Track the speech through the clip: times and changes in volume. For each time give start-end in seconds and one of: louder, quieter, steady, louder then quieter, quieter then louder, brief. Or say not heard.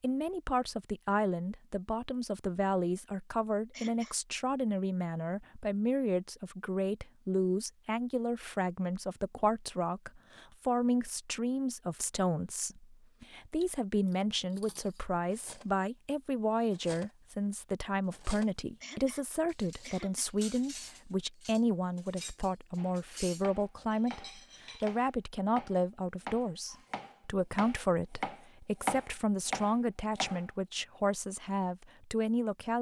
0.0-32.7 steady.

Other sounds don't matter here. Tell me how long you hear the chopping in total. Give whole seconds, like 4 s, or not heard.
8 s.